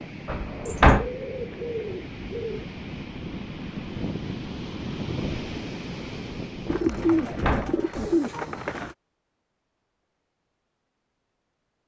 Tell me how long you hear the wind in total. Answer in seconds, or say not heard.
8 s.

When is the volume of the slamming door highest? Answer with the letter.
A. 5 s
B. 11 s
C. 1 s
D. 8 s
C.